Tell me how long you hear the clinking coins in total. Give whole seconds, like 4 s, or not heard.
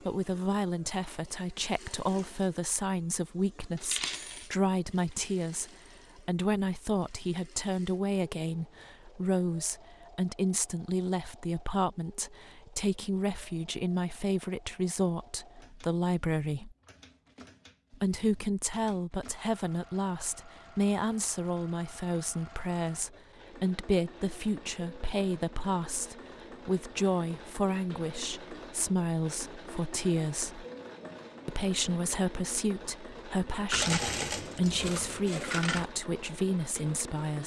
3 s.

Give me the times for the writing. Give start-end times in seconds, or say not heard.
not heard.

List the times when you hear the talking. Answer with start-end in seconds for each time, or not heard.
0.1-16.8, 17.9-30.6, 31.4-37.4.